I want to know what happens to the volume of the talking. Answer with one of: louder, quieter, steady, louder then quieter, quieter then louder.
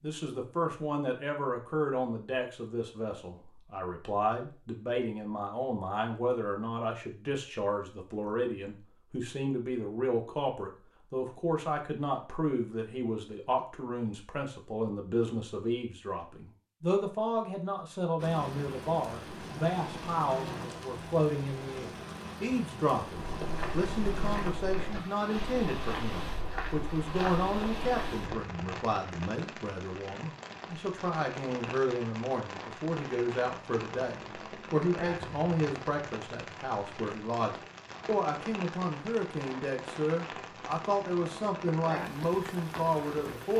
steady.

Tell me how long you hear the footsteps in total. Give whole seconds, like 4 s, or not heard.
5 s.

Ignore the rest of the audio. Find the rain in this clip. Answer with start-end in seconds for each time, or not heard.
18.1-43.5.